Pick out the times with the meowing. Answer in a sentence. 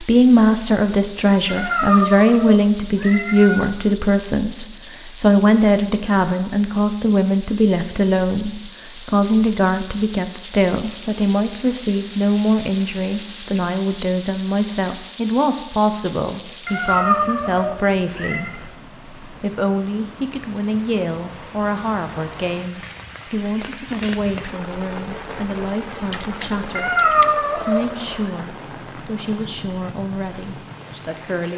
The meowing can be heard from 1.4 to 3.6 s, from 16.6 to 18.5 s and from 26.8 to 27.9 s.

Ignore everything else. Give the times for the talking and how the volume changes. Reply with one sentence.
You can hear the talking from 0.0 to 31.5 s, getting quieter.